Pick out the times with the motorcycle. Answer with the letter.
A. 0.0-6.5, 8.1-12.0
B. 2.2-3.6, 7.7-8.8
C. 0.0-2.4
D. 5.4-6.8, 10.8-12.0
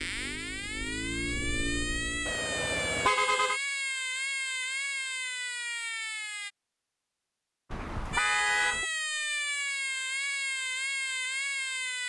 C.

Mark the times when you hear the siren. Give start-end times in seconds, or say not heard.
0.0-6.5, 8.1-12.0.